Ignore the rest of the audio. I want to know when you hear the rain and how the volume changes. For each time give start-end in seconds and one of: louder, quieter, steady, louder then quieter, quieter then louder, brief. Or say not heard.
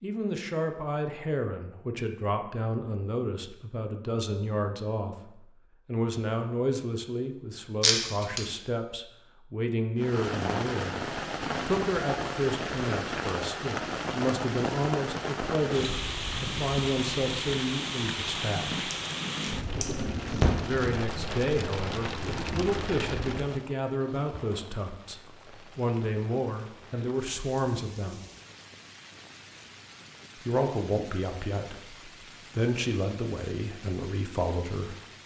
9.9-35.2 quieter.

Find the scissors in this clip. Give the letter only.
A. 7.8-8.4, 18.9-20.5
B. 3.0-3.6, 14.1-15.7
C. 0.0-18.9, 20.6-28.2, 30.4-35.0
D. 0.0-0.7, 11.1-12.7
A.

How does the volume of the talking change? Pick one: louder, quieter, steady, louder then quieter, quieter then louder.
steady.